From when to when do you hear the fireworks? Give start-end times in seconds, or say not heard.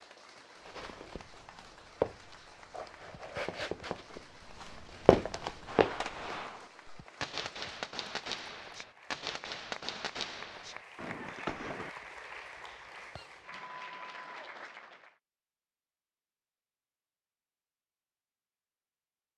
5.7-11.9.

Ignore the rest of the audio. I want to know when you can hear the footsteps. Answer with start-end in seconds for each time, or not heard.
0.6-6.3.